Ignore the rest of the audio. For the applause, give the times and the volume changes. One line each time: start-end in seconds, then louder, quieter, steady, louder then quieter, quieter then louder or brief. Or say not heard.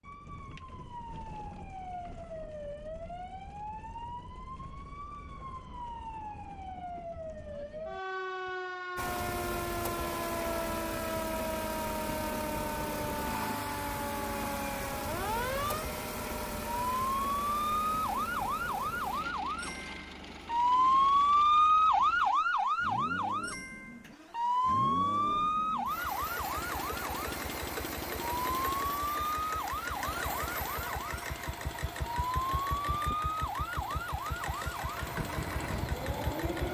not heard.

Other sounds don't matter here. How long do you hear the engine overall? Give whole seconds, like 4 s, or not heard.
28 s.